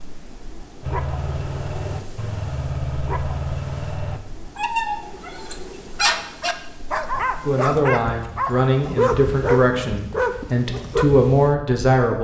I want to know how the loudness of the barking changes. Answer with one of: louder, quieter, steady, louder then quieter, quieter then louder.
louder.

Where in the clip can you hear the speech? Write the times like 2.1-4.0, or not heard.
7.5-12.1.